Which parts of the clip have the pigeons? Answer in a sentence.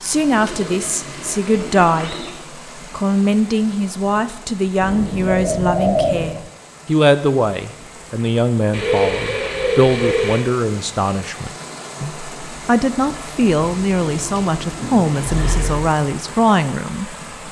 The pigeons can be heard from 0.3 to 2.3 s, from 4.8 to 6.3 s, from 8.7 to 10.4 s and from 13.7 to 15.9 s.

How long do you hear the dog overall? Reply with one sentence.
The dog can't be heard in this clip.